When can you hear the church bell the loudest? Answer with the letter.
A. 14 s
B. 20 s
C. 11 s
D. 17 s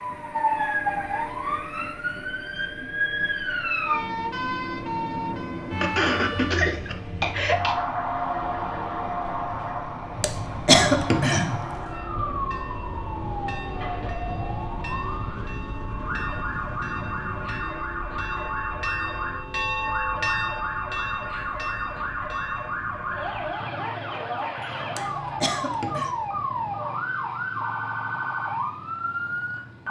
B.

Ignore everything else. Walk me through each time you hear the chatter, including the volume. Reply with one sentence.
The chatter can't be heard in this clip.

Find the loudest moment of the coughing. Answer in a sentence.
The volume of the coughing peaks at 11 seconds.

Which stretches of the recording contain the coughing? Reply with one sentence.
The coughing can be heard from 5.8 to 7.8 s, from 10.2 to 11.7 s and from 24.9 to 26.1 s.